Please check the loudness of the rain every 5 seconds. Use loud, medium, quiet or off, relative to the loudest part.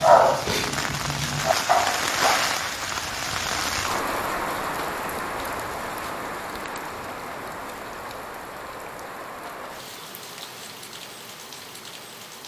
loud, medium, quiet.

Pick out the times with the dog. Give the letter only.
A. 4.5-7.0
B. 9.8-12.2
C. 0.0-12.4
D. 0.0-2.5
D.